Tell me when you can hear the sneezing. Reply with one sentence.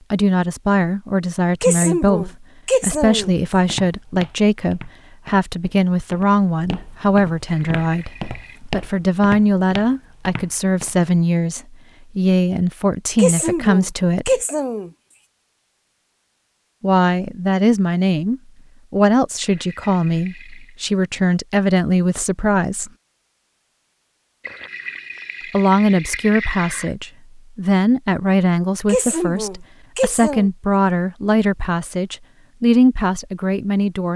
The sneezing can be heard from 1.6 to 3.4 s, from 13.2 to 14.9 s and from 28.9 to 30.5 s.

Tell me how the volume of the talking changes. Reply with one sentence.
The volume of the talking stays about the same.